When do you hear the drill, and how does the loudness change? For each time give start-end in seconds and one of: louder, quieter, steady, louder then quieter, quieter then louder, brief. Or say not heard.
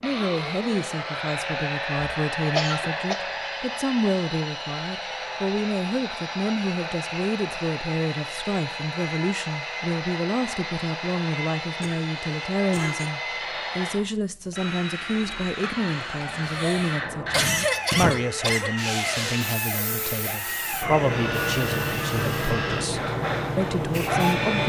0.0-24.6 steady.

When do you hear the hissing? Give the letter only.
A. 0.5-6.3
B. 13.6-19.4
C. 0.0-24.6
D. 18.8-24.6
D.